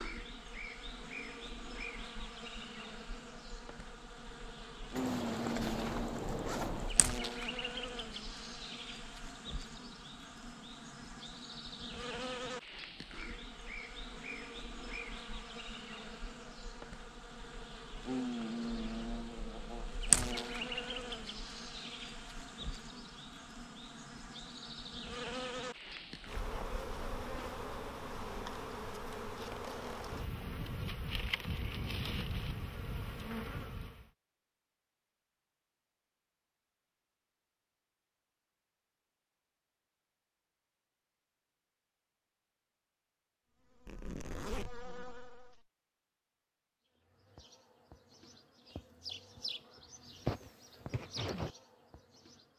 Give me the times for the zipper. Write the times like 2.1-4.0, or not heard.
5.0-7.0, 43.9-44.9.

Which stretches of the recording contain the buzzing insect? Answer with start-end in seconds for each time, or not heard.
0.0-34.1, 43.6-45.6, 47.0-52.5.